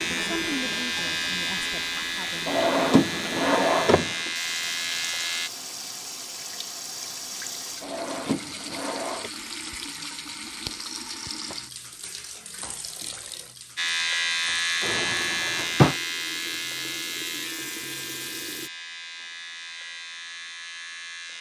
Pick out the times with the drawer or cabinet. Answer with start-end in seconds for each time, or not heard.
2.5-4.3, 7.8-9.3, 14.8-15.9.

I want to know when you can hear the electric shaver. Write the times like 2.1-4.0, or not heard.
0.0-5.5, 13.8-21.3.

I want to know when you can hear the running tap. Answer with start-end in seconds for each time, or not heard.
0.0-18.7.